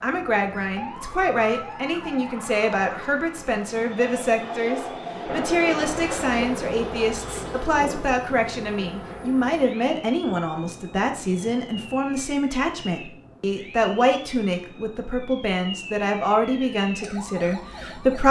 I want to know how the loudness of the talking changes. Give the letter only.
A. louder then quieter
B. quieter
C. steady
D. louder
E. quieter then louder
C.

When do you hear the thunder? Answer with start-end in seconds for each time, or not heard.
5.2-8.1.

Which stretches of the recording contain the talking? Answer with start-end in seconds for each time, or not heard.
0.0-18.2.